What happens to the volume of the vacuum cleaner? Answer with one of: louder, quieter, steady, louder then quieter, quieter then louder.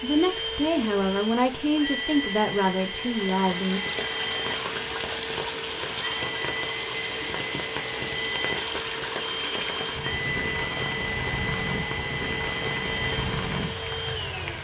steady.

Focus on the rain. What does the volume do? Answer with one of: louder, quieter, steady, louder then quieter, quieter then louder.
steady.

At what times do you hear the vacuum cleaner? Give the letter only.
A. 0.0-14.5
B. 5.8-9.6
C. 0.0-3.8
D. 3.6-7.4
A.